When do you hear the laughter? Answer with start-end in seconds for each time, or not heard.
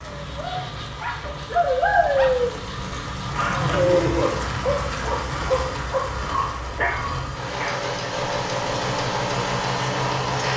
3.5-4.3.